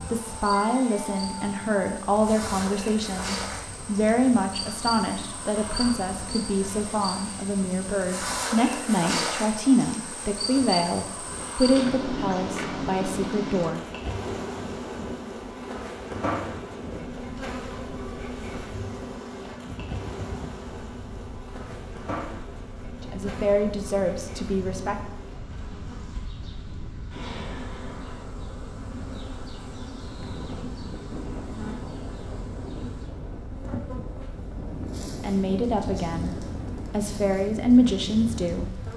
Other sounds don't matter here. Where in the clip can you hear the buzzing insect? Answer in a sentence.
The buzzing insect can be heard from 0.0 to 38.9 s.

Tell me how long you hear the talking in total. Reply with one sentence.
You can hear the talking for 20 seconds altogether.